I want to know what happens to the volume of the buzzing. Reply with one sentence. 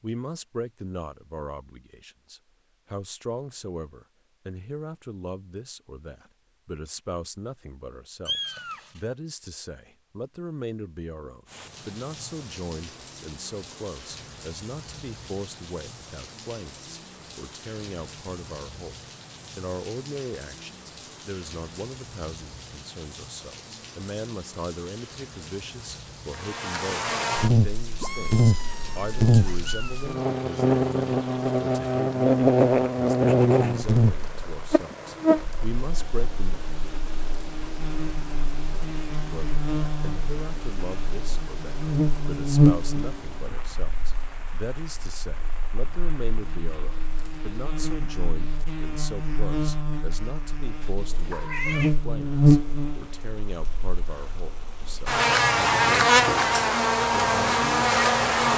The loudness of the buzzing goes down, then up.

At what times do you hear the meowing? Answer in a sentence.
The meowing can be heard from 8.2 to 9.0 s, from 28.0 to 30.2 s and from 50.8 to 52.0 s.